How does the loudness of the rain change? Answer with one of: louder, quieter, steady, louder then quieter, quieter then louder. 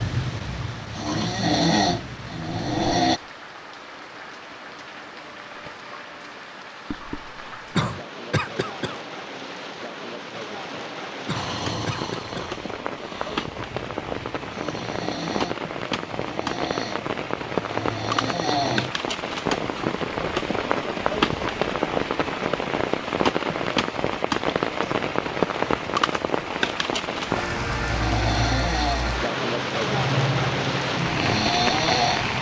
louder.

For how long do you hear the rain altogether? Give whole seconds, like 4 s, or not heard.
32 s.